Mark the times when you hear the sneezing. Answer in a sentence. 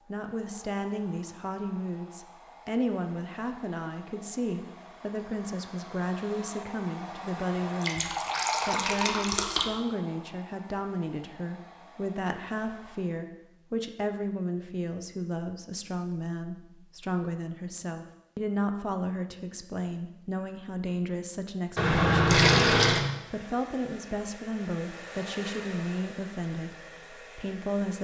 You can't hear the sneezing here.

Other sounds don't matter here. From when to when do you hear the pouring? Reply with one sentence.
You can hear the pouring from 7.8 to 9.7 s and from 21.8 to 23.1 s.